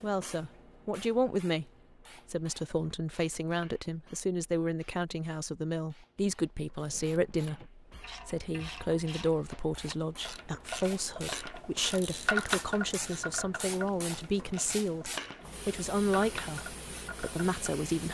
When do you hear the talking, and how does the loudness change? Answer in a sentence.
The talking can be heard briefly from 0.0 to 1.6 s; and from 2.2 to 18.0 s, at a steady volume.